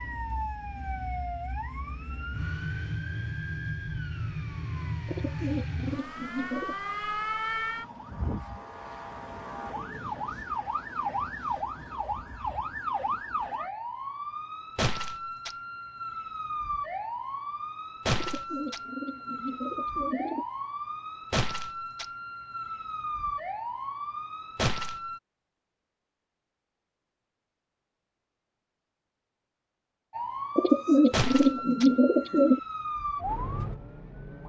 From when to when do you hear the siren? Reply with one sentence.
You can hear the siren from 0.0 to 25.2 s and from 30.1 to 34.4 s.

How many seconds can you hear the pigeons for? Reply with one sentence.
You can hear the pigeons for 6 seconds altogether.